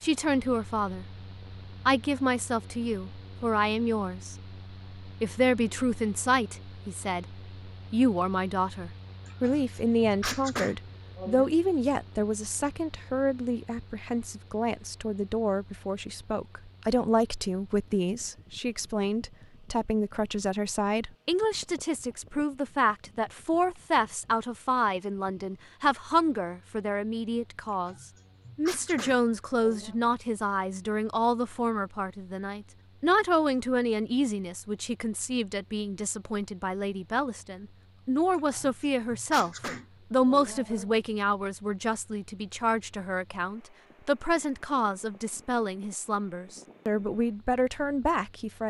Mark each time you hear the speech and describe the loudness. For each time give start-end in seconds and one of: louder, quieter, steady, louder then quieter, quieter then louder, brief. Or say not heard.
0.0-1.1 brief
1.9-4.3 brief
5.0-27.9 steady
28.6-48.6 steady.